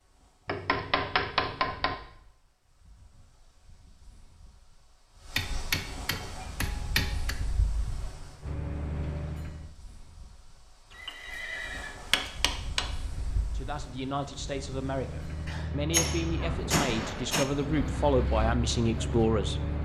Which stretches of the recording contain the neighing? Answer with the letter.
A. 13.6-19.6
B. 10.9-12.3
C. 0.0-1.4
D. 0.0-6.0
B.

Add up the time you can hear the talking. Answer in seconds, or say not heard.
6 s.